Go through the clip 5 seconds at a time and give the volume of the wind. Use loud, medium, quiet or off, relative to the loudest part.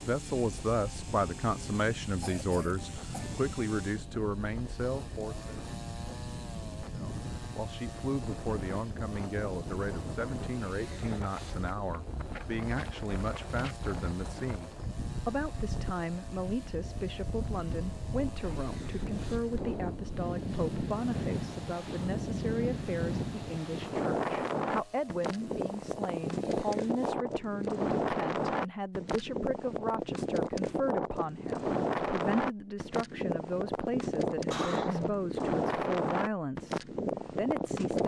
quiet, medium, medium, medium, loud, loud, loud, loud.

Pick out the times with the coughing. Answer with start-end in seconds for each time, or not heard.
2.2-3.3, 34.5-35.2.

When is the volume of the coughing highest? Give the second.
35 s.